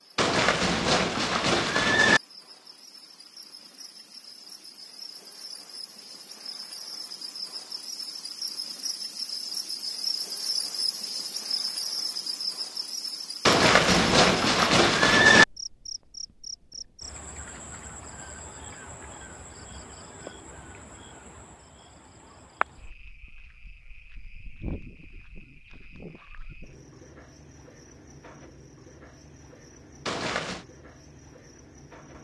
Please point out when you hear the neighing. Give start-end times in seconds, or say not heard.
0.1-2.2, 13.4-15.4, 30.1-30.6.